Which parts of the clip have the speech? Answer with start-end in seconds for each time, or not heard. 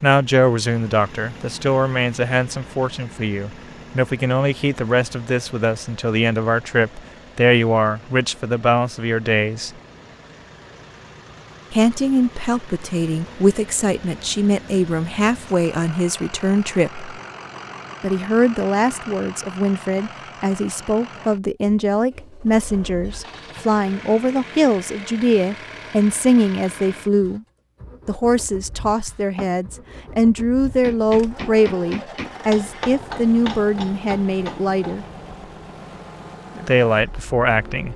0.0-9.7, 11.7-17.1, 18.0-27.4, 28.1-35.0, 36.5-37.9.